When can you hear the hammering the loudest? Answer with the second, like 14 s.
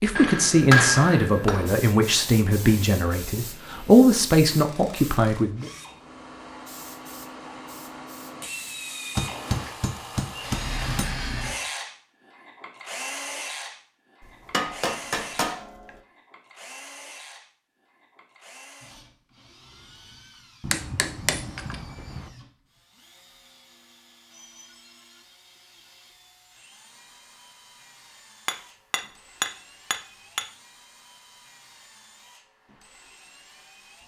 1 s.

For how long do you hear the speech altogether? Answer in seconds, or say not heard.
6 s.